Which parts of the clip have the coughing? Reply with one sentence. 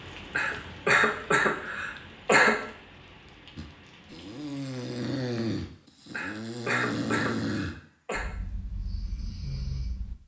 The coughing can be heard from 0.3 to 2.6 s and from 6.1 to 8.2 s.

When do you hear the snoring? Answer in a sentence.
The snoring can be heard from 3.5 to 10.2 s.